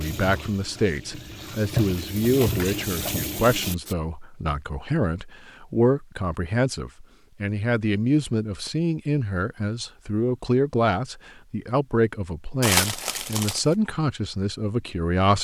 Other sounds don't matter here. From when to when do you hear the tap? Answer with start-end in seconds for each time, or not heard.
0.0-4.0.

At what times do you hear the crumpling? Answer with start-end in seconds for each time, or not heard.
12.6-13.6.